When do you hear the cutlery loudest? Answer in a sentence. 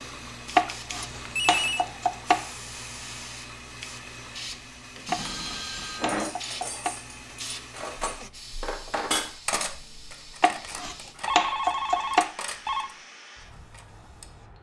The loudest moment of the cutlery is at 9 seconds.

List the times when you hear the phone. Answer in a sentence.
The phone can be heard from 1.0 to 1.9 s, from 5.0 to 6.3 s and from 10.6 to 12.9 s.